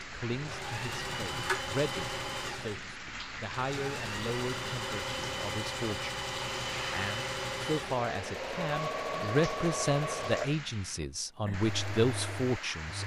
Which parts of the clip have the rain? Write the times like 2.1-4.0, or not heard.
0.0-13.0.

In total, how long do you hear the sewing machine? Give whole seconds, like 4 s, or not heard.
13 s.